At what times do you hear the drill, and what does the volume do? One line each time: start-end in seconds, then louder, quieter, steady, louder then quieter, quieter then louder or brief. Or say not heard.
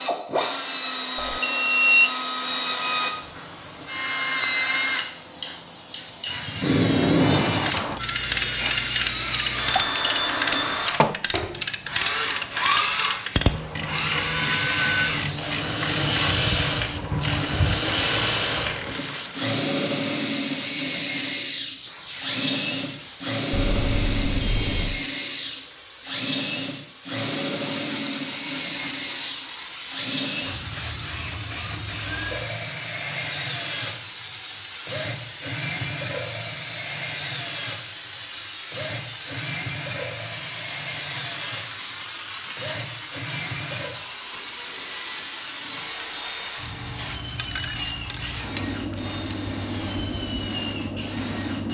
0.0-51.7 quieter.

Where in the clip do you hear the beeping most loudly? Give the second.
2 s.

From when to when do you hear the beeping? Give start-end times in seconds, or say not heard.
1.1-2.1, 23.5-25.0, 44.3-46.5.